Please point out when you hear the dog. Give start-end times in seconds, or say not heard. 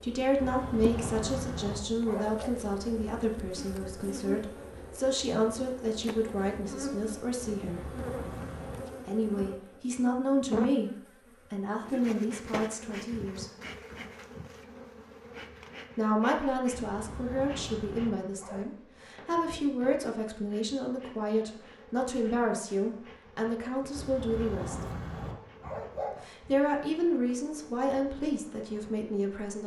0.3-2.5, 7.4-8.9, 16.7-18.6, 23.9-26.2.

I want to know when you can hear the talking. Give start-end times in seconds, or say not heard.
0.0-7.8, 9.1-10.9, 11.5-13.5, 15.9-24.8, 26.2-29.6.